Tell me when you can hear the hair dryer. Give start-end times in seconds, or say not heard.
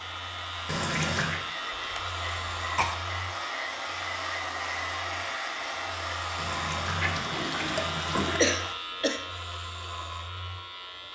0.0-8.8.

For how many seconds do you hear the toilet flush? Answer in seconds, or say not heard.
3 s.